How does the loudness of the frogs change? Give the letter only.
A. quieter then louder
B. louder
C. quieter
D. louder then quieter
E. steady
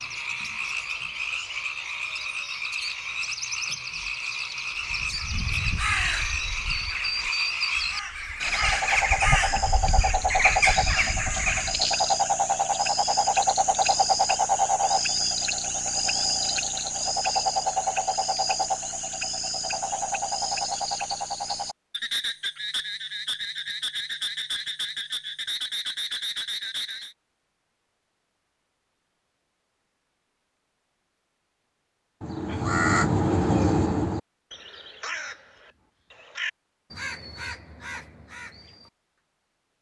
D.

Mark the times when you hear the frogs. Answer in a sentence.
The frogs can be heard from 0.0 to 27.1 s.